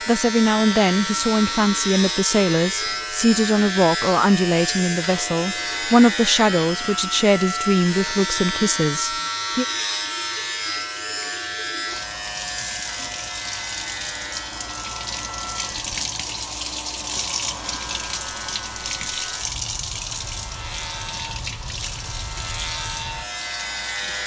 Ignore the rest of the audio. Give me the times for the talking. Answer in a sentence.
You can hear the talking from 0.1 to 9.7 s.